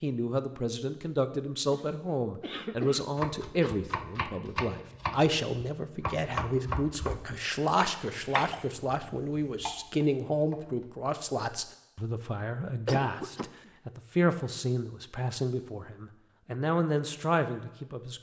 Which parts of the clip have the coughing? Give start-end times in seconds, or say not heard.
1.7-3.7, 8.3-9.7, 12.8-13.7.